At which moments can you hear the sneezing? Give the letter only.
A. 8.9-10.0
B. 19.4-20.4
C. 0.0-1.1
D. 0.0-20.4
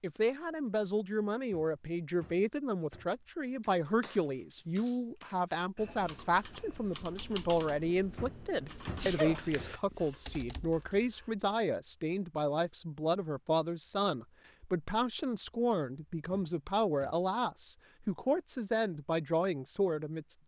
A.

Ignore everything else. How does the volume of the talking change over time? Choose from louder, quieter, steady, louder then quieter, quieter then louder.
steady.